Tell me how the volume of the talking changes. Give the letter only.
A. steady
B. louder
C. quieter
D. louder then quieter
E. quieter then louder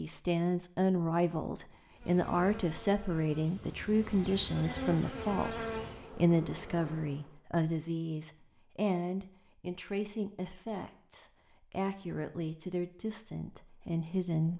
C.